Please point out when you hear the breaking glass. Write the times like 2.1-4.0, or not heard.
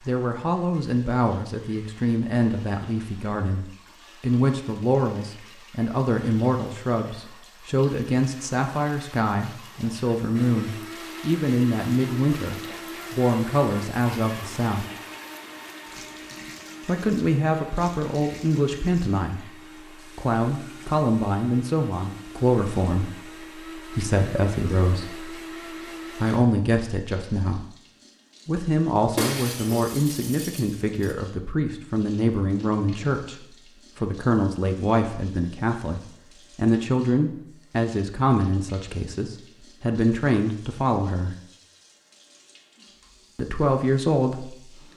29.1-31.1.